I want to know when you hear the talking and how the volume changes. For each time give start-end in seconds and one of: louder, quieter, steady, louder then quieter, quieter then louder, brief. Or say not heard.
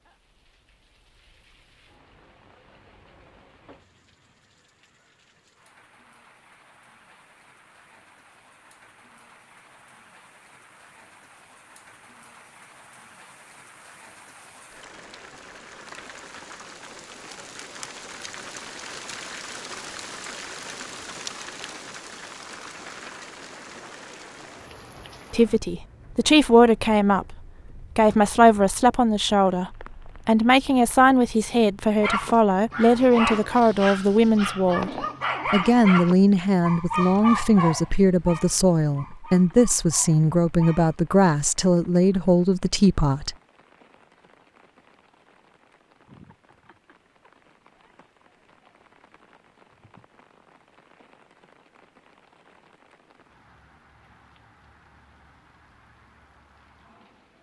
25.3-43.4 steady.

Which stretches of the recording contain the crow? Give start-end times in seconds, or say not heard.
not heard.